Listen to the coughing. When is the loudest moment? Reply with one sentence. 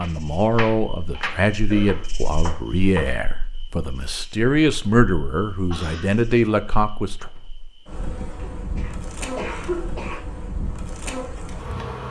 The loudest moment of the coughing is at 10 seconds.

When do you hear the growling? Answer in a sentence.
The growling can't be heard in this clip.